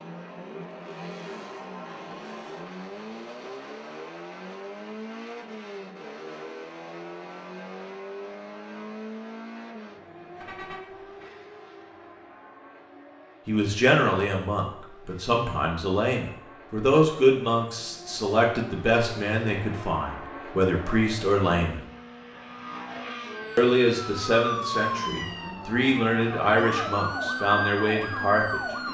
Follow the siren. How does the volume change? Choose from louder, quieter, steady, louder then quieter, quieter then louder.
quieter then louder.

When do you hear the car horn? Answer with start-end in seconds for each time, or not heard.
10.4-11.3.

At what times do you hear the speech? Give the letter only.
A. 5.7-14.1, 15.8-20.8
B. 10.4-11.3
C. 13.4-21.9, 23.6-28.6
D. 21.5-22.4
C.